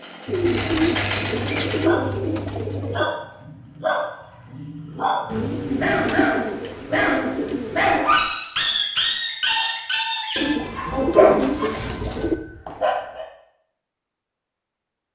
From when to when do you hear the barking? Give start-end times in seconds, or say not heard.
1.6-13.2.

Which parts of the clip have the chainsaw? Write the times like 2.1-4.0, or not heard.
0.0-1.9.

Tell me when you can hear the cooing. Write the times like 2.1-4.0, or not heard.
0.2-3.1, 5.2-8.1, 10.3-12.3.